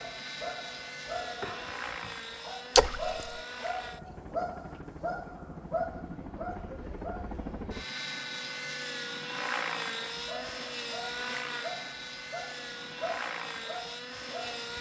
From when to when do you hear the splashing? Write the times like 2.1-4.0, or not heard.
2.8-3.4.